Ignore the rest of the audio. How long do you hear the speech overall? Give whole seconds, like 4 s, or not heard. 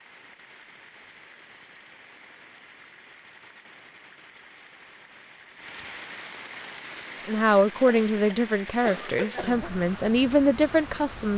4 s.